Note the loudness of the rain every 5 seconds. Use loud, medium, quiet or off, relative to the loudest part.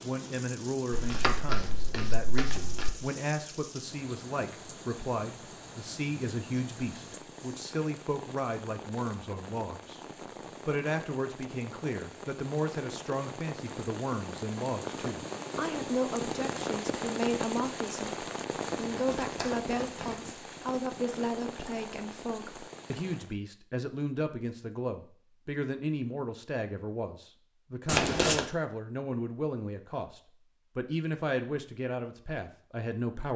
medium, medium, medium, loud, medium, off, off.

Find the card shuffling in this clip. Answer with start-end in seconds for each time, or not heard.
0.9-2.9, 18.9-20.3, 27.9-28.4.